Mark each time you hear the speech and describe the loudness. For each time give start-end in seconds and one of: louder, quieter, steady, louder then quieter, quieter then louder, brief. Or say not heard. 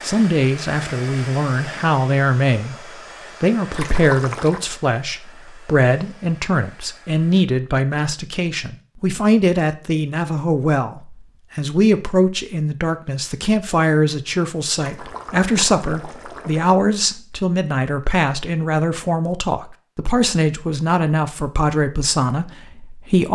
0.0-23.3 steady.